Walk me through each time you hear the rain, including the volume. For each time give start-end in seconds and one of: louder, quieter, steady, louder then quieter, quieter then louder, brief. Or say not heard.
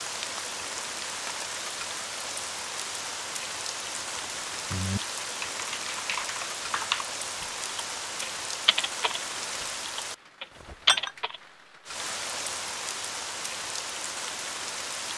0.0-15.1 steady.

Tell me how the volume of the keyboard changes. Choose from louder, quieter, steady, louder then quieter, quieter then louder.
louder.